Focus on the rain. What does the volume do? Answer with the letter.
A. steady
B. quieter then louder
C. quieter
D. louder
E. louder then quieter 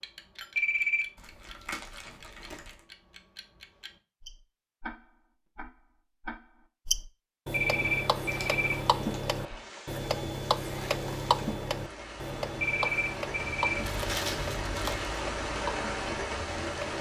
D.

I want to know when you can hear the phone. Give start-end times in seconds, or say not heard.
0.6-1.1, 7.5-8.8, 12.6-13.8.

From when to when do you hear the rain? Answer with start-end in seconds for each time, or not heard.
7.6-16.9.